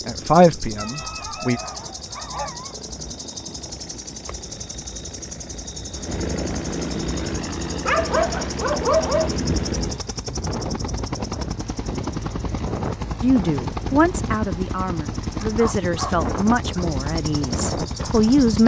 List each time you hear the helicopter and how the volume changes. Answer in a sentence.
The helicopter can be heard from 0.0 to 18.6 s, getting louder.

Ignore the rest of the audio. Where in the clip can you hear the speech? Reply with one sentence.
You can hear the speech from 0.1 to 1.6 s and from 13.2 to 18.6 s.